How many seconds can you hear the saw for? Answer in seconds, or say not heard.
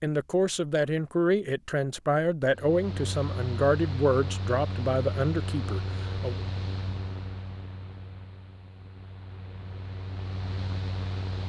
not heard.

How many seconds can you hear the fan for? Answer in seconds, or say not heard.
9 s.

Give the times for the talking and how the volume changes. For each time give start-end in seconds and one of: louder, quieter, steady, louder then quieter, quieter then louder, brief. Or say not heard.
0.0-6.4 steady.